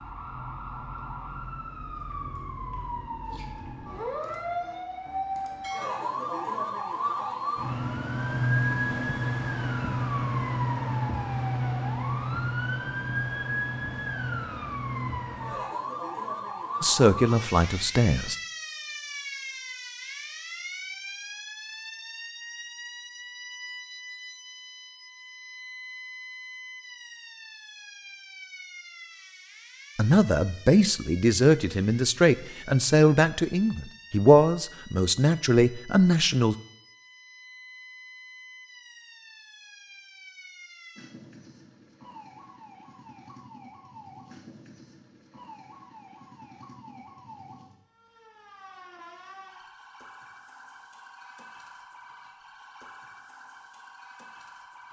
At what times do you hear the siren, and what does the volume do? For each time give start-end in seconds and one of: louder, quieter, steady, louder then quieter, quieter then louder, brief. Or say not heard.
0.0-54.8 quieter.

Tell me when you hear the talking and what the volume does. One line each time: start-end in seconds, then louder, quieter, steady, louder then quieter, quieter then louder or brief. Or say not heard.
16.8-18.4 brief
29.9-36.5 steady.